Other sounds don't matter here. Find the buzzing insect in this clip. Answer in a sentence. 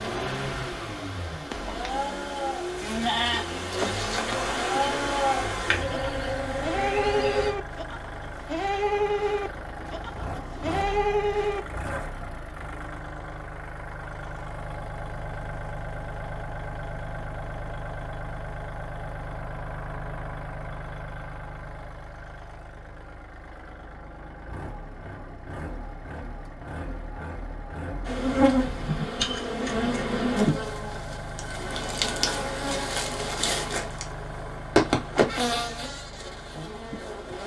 The buzzing insect can be heard from 0.0 to 7.5 s and from 28.1 to 37.4 s.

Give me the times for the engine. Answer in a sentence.
You can hear the engine from 0.0 to 37.4 s.